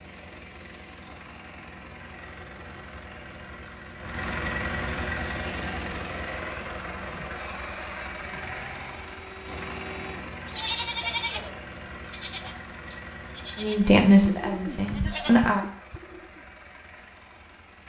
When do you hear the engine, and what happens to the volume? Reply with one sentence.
You can hear the engine from 0.0 to 17.8 s, getting louder then quieter.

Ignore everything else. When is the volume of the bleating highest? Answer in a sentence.
The volume of the bleating peaks at 11 seconds.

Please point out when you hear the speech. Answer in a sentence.
You can hear the speech from 13.6 to 15.6 s.